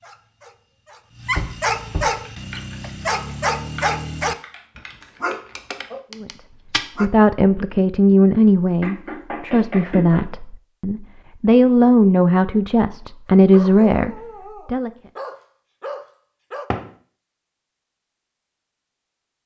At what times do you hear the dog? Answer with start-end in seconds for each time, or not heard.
0.0-7.1, 13.5-16.6.